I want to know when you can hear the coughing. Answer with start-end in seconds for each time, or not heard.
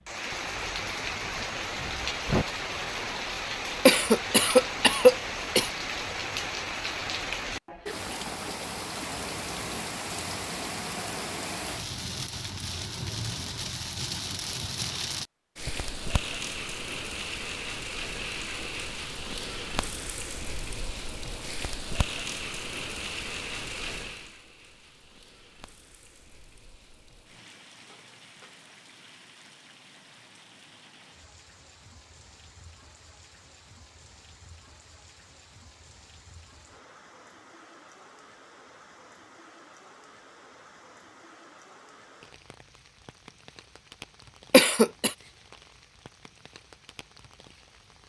3.9-5.7, 44.5-45.1.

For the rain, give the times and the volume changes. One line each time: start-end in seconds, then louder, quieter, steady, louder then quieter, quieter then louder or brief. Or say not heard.
0.1-48.0 quieter.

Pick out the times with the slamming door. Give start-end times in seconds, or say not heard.
1.2-2.5.